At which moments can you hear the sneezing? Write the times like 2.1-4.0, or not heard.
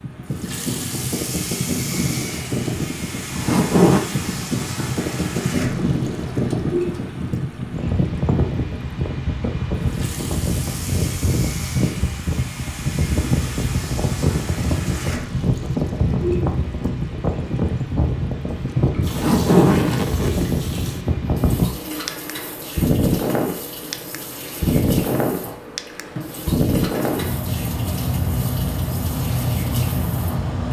not heard.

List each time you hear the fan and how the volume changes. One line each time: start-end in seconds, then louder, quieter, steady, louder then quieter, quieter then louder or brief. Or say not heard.
0.0-30.6 steady.